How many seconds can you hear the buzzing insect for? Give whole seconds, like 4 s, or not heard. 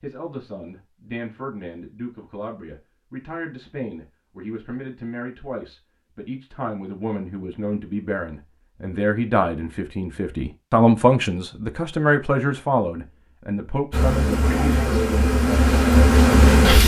3 s.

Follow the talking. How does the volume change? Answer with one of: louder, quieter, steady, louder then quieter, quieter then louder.
louder.